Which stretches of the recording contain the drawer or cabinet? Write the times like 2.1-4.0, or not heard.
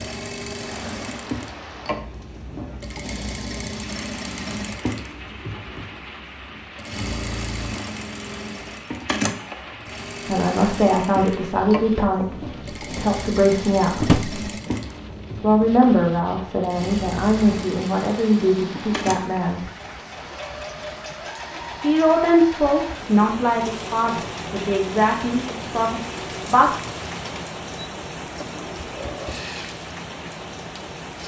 14.0-14.4.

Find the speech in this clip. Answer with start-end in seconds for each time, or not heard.
10.2-14.1, 15.4-19.6, 21.8-26.8.